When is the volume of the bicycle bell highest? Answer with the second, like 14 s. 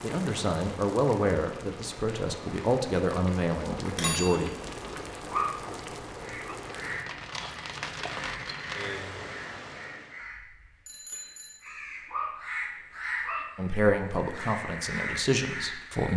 4 s.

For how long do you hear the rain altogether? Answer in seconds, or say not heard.
10 s.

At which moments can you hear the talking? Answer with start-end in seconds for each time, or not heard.
0.0-4.5, 13.6-16.1.